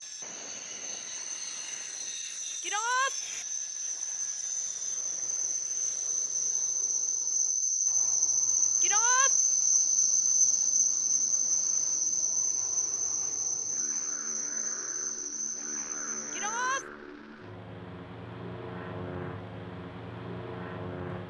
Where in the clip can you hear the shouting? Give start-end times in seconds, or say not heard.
2.6-3.1, 8.8-9.3, 16.3-16.9.